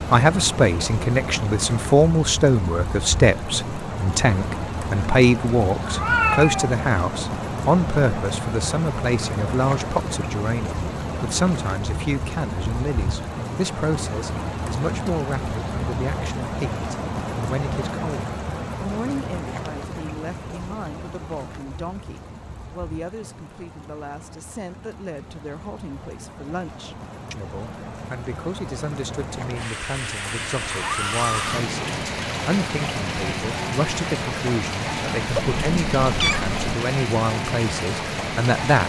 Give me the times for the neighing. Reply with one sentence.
The neighing can be heard from 30.7 to 31.6 s.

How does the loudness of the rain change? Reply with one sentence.
The volume of the rain goes down, then up.